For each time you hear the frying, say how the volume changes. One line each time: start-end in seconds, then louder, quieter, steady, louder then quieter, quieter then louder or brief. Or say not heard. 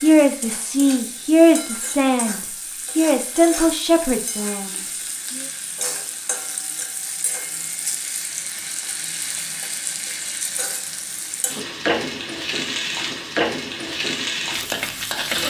0.0-15.4 louder.